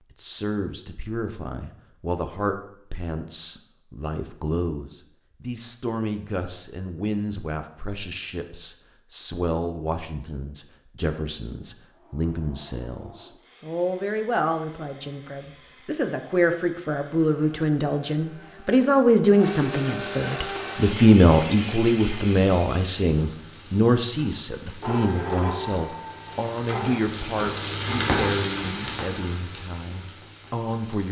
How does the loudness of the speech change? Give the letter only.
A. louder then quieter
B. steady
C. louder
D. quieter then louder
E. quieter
A.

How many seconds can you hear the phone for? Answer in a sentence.
The phone can be heard for 2 seconds in total.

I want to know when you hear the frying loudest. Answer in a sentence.
The volume of the frying peaks at 28 seconds.